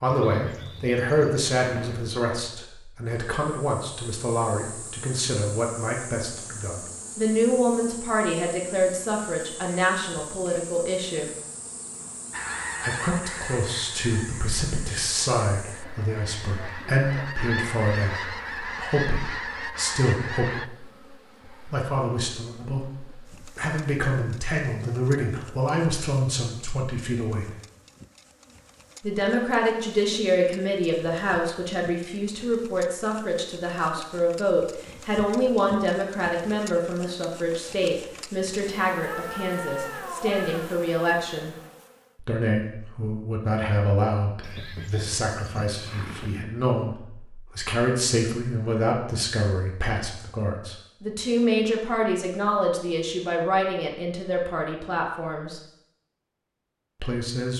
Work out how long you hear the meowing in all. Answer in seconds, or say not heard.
2 s.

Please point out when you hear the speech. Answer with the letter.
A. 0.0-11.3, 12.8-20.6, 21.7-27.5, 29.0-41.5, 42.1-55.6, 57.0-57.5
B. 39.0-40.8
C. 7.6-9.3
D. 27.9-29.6
A.